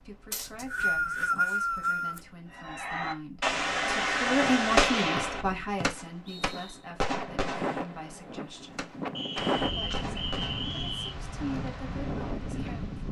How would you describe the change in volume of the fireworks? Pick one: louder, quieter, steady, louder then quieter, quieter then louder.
quieter.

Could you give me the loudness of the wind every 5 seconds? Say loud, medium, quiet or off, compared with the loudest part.
quiet, loud, loud.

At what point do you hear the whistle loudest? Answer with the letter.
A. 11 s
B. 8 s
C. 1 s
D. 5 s
C.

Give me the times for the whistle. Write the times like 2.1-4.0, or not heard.
0.3-2.2, 5.8-6.8, 9.2-11.2.